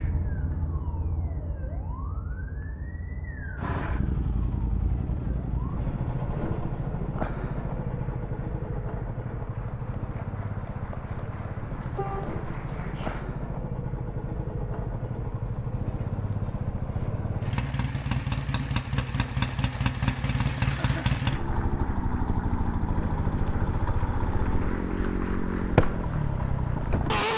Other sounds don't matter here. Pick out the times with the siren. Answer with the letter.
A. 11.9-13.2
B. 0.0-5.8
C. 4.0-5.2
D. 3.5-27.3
B.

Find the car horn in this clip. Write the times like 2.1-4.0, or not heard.
11.9-13.2.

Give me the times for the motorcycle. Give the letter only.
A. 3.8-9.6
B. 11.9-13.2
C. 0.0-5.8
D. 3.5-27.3
D.